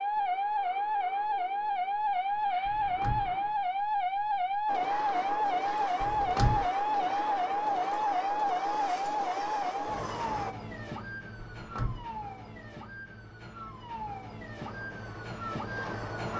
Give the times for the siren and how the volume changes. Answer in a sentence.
The siren can be heard from 0.0 to 16.3 s, getting quieter.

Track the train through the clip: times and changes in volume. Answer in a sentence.
The train can be heard from 4.7 to 10.6 s, at a steady volume; and briefly from 14.6 to 16.3 s.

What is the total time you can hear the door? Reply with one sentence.
The door can be heard for 2 seconds in total.